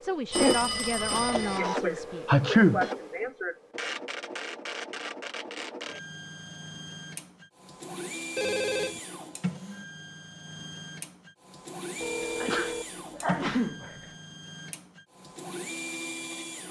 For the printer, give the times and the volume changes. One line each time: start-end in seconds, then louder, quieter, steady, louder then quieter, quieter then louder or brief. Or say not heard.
0.0-16.6 quieter.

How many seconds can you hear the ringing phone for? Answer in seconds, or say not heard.
3 s.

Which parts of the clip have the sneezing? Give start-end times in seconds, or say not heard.
1.4-3.5, 12.4-13.9.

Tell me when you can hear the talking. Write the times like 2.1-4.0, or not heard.
0.0-2.4.